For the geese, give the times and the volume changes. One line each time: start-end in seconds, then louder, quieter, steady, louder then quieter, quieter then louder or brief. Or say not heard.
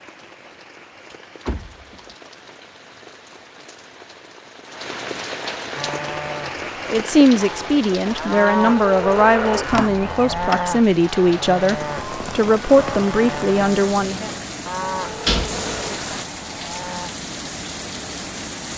not heard.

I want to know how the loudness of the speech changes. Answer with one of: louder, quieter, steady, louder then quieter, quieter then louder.
steady.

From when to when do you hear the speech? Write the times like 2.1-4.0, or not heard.
6.9-14.3.